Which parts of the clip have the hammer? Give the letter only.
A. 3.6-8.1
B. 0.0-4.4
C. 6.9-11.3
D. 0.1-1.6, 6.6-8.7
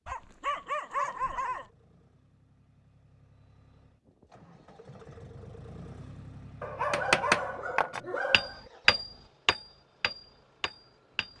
C.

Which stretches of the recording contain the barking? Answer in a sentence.
You can hear the barking from 0.1 to 1.6 s and from 6.6 to 8.7 s.